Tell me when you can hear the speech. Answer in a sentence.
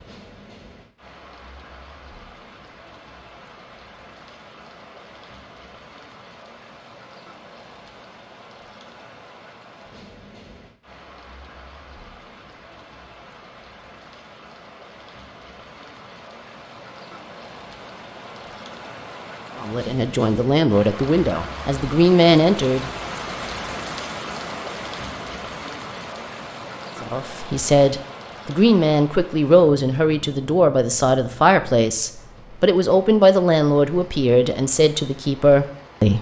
You can hear the speech from 19.6 to 22.9 s and from 27.0 to 36.1 s.